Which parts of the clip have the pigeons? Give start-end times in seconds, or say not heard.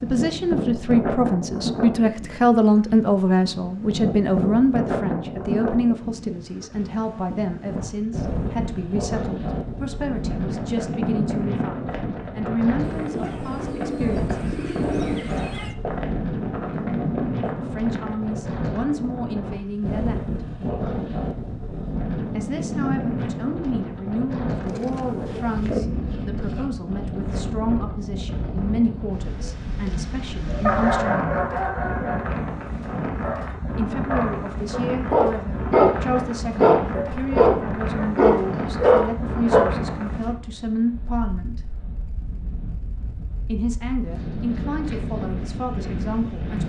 12.8-15.8, 24.6-25.8.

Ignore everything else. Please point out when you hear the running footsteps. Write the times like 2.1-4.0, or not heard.
10.5-18.1.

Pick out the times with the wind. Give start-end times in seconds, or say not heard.
0.0-46.6.